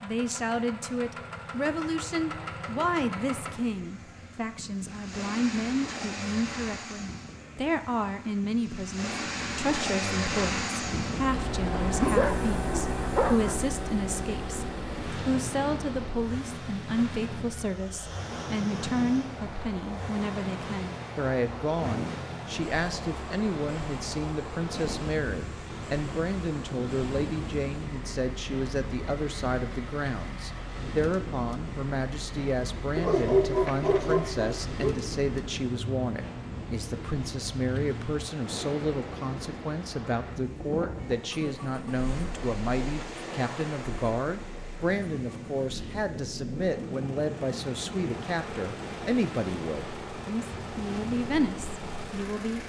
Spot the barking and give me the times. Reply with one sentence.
You can hear the barking from 11.8 to 13.6 s and from 33.0 to 35.0 s.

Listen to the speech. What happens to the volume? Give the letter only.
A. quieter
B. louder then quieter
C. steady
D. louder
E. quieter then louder
C.